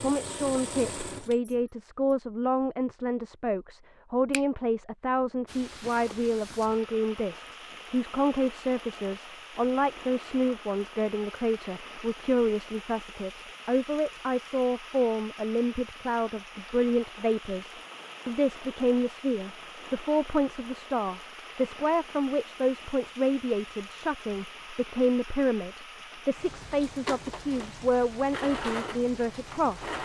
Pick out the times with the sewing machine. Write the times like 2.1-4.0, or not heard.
0.0-2.1, 26.9-29.9.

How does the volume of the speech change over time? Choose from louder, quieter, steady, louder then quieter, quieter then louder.
steady.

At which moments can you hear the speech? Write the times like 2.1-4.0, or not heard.
0.0-29.9.